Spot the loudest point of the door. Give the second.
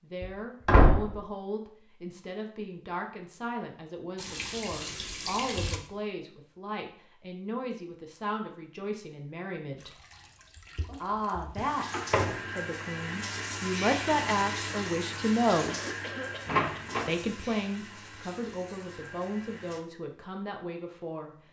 1 s.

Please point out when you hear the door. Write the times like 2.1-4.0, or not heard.
0.2-1.1, 11.6-12.3, 16.4-17.1.